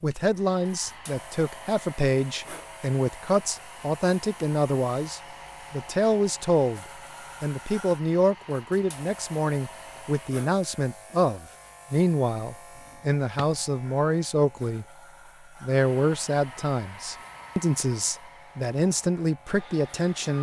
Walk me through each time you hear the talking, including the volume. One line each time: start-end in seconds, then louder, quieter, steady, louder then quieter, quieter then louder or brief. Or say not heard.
0.0-14.8 steady
15.6-20.3 quieter then louder.